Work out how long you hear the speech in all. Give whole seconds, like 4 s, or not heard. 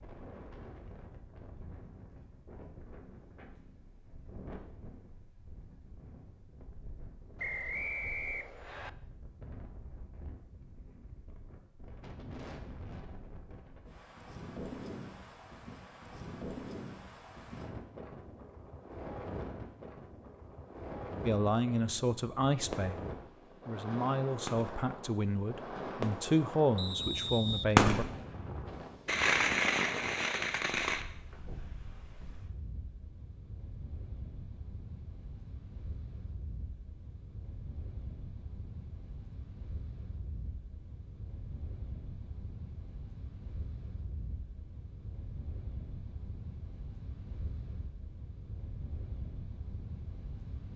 6 s.